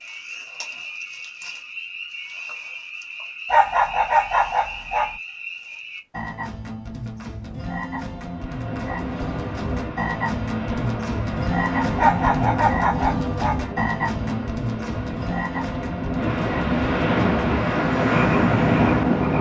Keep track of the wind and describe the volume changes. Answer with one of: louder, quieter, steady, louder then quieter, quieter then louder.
louder.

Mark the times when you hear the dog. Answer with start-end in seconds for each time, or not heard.
3.5-5.2, 11.9-13.6.